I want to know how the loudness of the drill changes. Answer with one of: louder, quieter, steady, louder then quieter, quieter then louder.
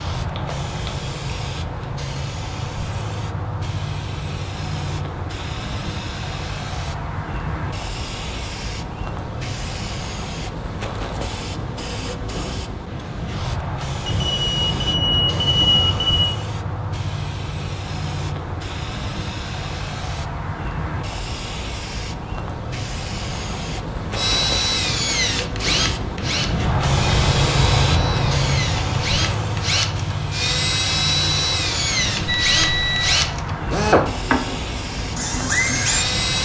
quieter then louder.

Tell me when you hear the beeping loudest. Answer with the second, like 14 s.
16 s.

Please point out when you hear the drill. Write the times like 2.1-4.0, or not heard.
24.1-36.3.